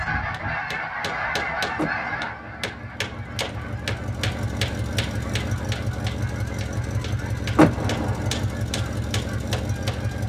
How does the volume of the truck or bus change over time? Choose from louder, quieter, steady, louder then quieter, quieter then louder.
louder.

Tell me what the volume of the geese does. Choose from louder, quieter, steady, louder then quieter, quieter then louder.
quieter.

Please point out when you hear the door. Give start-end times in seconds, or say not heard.
1.8-2.6, 7.5-8.4.